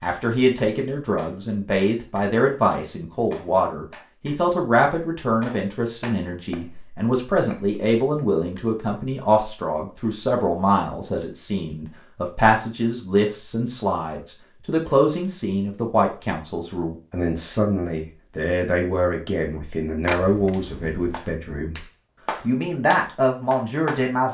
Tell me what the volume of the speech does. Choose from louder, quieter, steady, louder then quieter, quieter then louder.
steady.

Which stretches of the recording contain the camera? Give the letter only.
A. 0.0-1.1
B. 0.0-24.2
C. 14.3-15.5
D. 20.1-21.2
D.